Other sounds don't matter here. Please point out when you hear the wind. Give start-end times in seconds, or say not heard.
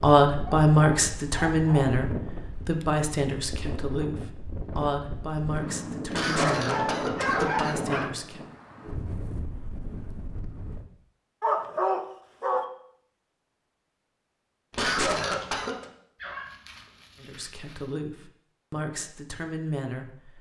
0.1-10.9.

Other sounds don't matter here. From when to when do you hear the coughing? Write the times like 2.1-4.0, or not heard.
6.1-7.8, 14.7-15.8.